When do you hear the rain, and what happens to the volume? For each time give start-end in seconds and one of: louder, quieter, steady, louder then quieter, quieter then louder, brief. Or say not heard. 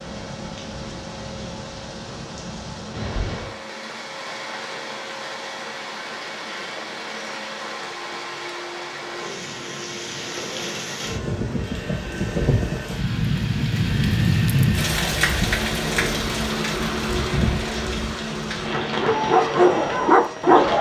0.0-20.7 louder then quieter.